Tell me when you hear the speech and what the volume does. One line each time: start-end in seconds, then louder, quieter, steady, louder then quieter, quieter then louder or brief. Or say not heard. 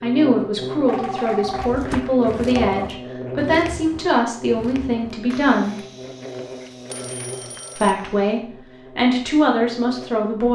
0.0-5.8 steady
7.8-10.5 brief.